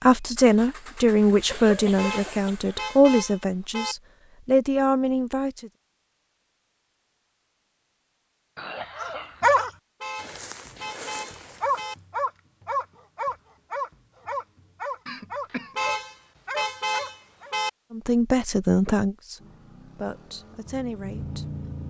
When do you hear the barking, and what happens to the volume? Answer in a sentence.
You can hear the barking from 8.9 to 17.6 s, getting quieter.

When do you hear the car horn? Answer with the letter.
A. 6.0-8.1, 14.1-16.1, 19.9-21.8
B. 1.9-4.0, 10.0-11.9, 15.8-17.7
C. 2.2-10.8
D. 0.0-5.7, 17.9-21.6
B.